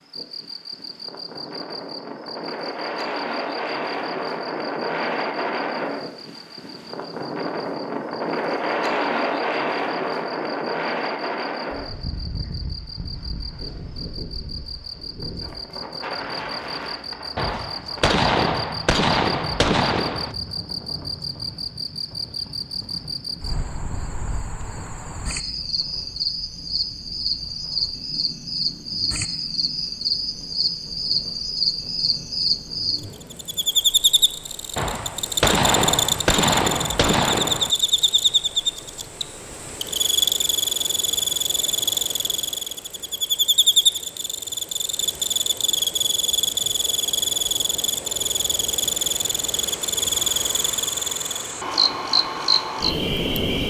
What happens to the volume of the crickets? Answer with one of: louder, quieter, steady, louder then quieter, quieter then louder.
louder.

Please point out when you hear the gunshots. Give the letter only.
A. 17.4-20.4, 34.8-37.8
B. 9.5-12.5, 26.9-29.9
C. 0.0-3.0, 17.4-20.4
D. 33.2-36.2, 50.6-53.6
A.